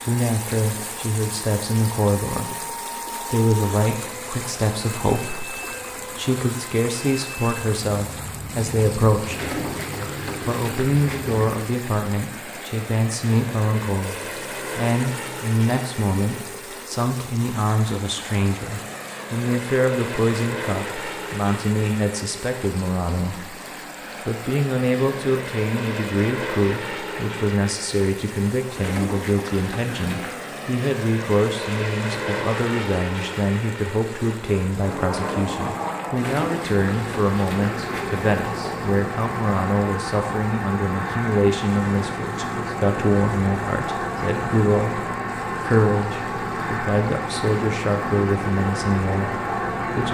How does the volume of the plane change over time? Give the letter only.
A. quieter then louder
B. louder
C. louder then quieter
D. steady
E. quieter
B.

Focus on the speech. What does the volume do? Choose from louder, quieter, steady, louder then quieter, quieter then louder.
steady.